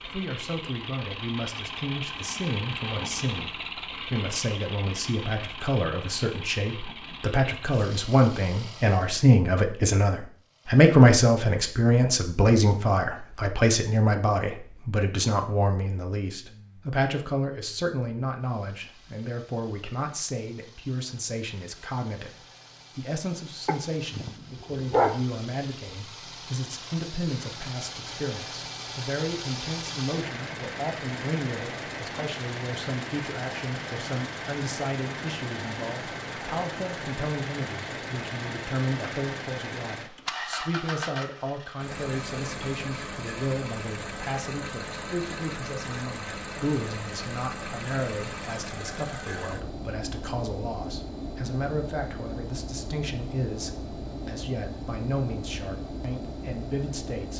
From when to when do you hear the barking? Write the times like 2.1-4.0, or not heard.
23.6-25.1.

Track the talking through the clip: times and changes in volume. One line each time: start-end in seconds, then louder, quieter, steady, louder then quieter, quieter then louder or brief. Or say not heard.
0.0-57.3 quieter.